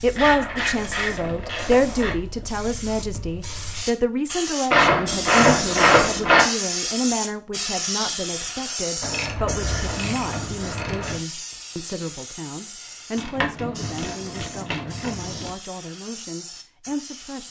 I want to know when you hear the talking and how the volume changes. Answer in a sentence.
The talking can be heard from 0.0 to 17.4 s, getting quieter.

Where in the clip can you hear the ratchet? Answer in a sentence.
You can hear the ratchet from 0.1 to 2.1 s, from 4.7 to 6.5 s, from 9.0 to 11.2 s and from 13.2 to 15.5 s.